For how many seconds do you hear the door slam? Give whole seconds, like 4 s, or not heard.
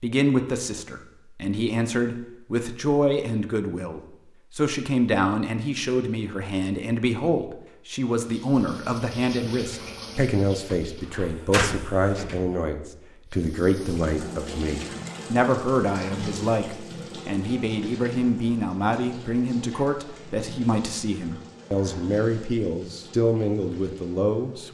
2 s.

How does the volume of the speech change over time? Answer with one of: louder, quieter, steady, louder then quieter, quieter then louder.
steady.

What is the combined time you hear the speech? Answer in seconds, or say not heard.
25 s.